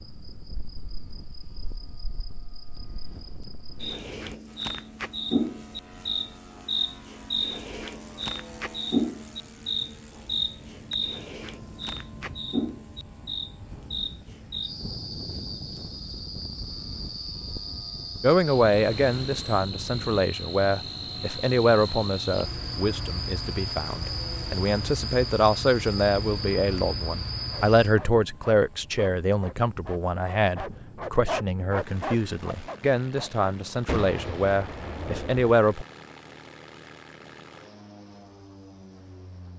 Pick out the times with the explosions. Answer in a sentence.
You can hear the explosions from 33.9 to 35.5 s.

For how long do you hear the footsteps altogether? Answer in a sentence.
You can't hear the footsteps here.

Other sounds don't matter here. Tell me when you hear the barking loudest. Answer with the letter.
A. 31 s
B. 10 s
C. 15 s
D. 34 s
A.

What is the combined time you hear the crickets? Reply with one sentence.
You can hear the crickets for 28 seconds altogether.